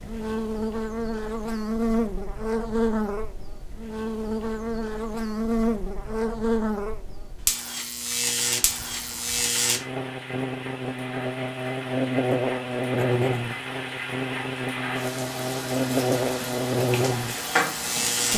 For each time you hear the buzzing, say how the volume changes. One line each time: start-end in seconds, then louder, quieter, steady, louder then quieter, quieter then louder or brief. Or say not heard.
0.0-18.3 steady.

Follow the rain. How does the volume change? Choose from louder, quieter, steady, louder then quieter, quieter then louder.
louder.